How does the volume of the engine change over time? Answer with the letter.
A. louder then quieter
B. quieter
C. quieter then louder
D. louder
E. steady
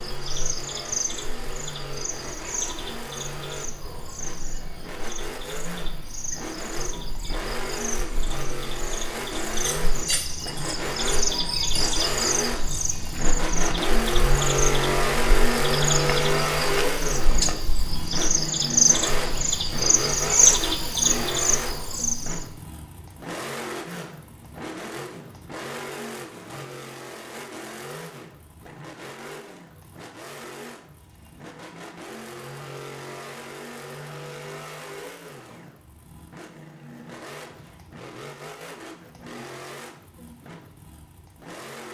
A.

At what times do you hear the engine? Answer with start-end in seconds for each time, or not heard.
0.0-41.8.